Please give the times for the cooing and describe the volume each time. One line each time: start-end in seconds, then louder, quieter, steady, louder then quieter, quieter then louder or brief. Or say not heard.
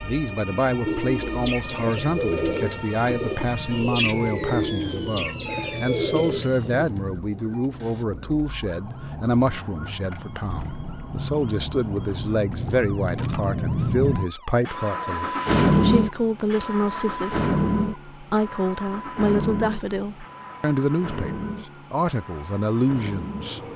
0.8-6.8 steady.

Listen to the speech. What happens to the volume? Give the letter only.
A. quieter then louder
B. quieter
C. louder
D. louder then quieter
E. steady
E.